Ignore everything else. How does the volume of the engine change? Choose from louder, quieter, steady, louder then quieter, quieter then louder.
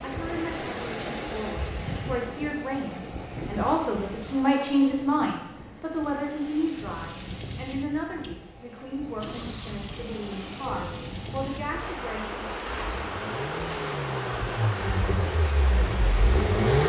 louder.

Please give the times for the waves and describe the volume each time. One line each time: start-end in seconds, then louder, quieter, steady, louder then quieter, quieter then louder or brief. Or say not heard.
0.0-16.8 quieter then louder.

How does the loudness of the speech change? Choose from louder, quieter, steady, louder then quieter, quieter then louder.
louder then quieter.